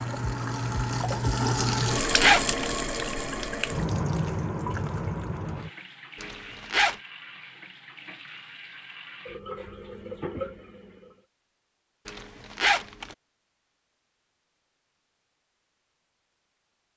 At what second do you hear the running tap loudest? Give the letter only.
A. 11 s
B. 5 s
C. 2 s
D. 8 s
C.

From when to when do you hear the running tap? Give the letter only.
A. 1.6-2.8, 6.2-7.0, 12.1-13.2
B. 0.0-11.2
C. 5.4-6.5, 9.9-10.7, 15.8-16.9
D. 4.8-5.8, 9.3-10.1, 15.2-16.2
B.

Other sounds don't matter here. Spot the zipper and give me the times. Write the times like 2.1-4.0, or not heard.
1.6-2.8, 6.2-7.0, 12.1-13.2.